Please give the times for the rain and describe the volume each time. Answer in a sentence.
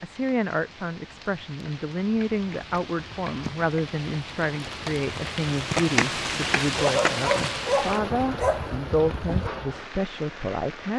You can hear the rain from 0.0 to 10.9 s, getting louder then quieter.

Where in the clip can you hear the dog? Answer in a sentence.
You can hear the dog from 6.8 to 9.5 s.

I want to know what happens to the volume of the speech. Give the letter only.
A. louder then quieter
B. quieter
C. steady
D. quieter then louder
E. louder
C.